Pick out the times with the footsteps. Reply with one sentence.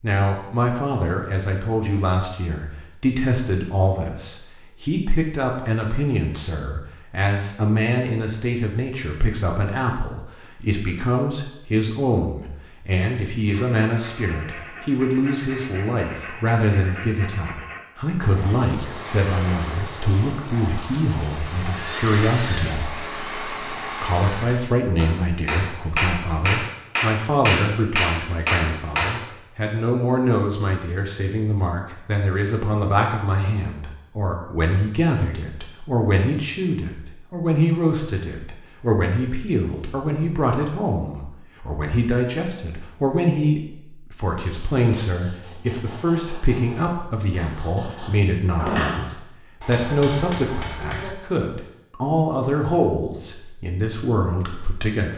You can't hear the footsteps here.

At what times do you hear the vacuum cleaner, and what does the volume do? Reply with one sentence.
You can hear the vacuum cleaner from 18.9 to 24.6 s, getting quieter then louder.